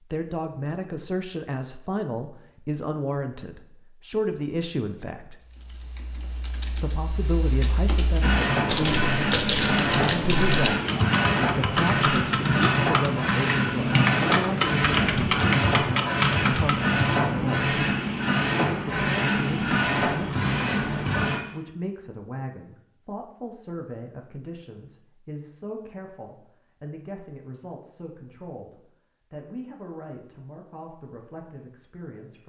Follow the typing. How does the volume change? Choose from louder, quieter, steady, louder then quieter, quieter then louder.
louder.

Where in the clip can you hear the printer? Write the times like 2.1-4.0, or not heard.
8.2-21.4.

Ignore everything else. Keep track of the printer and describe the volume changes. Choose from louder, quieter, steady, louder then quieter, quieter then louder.
steady.